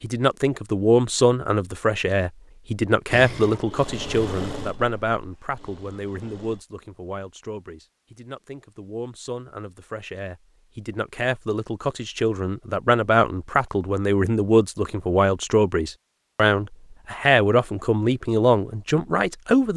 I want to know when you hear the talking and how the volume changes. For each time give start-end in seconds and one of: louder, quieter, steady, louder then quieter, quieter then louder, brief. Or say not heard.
0.0-19.7 quieter then louder.